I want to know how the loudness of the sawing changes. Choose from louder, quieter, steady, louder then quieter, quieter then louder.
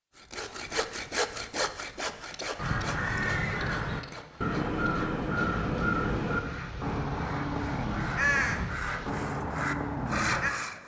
quieter then louder.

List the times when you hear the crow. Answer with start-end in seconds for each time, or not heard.
2.5-10.5.